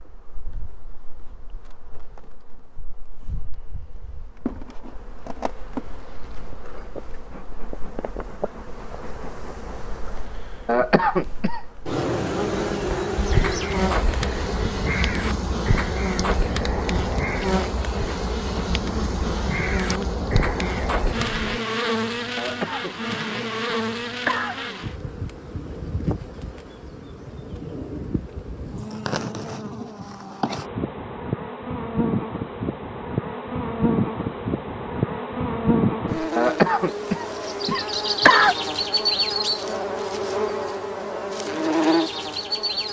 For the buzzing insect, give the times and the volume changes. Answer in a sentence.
The buzzing insect can be heard from 0.0 to 42.8 s, getting louder.